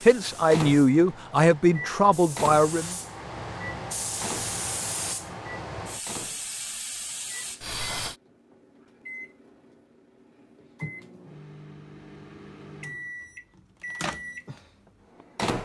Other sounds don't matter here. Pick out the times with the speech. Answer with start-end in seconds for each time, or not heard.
0.0-3.0.